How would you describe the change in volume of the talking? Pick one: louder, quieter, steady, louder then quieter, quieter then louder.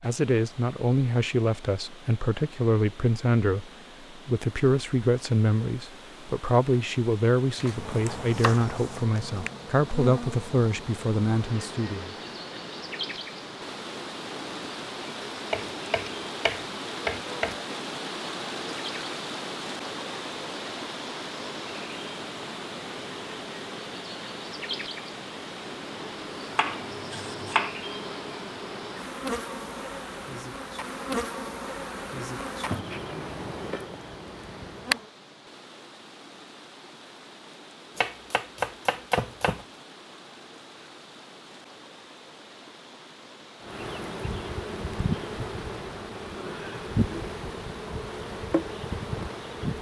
steady.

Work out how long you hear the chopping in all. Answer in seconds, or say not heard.
6 s.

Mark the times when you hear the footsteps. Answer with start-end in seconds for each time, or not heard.
not heard.